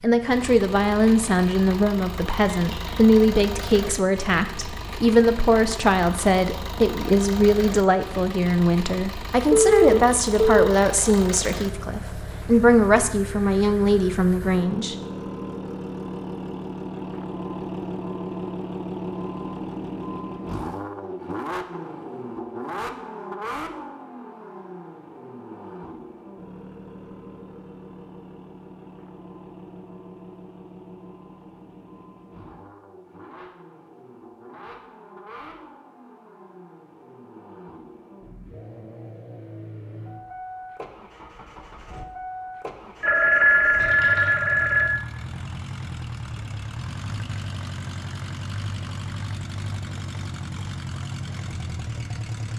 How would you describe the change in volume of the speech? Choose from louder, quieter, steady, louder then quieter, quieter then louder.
steady.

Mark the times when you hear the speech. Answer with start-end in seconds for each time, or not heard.
0.0-14.9.